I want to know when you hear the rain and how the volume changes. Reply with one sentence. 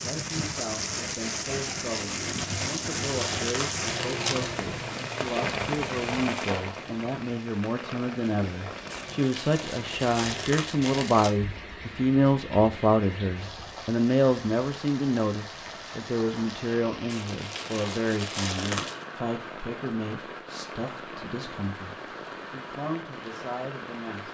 The rain can be heard from 0.0 to 24.2 s, getting quieter.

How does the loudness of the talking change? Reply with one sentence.
The volume of the talking goes up, then down.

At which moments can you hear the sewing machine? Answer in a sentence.
The sewing machine can't be heard in this clip.